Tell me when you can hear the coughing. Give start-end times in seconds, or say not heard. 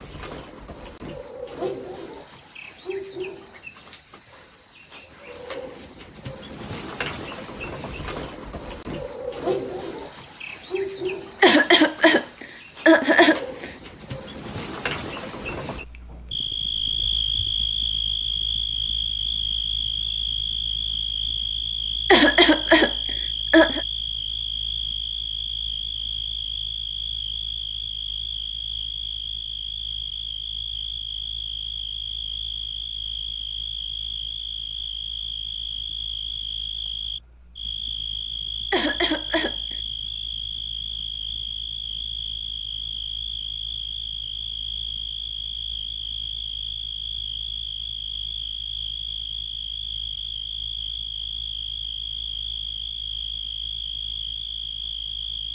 11.4-13.7, 22.1-23.8, 38.7-39.8.